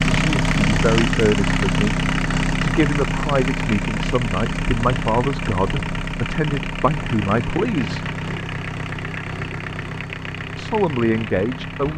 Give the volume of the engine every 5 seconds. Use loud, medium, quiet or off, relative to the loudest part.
loud, medium, medium.